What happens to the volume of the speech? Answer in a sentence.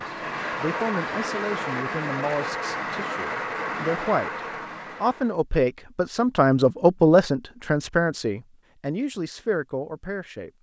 The loudness of the speech goes up, then down.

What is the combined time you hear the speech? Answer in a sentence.
You can hear the speech for 10 seconds altogether.